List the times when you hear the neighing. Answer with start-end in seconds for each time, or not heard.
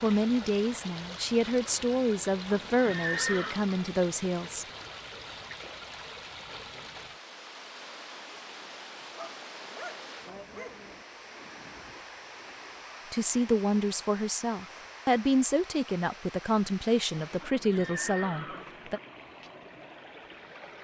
2.5-3.6, 17.4-19.0.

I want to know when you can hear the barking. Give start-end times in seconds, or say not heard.
9.0-11.0.